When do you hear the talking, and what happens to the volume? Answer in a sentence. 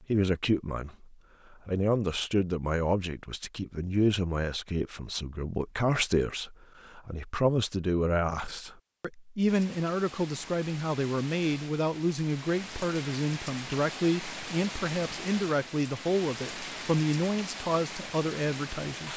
You can hear the talking from 0.1 to 19.1 s, at a steady volume.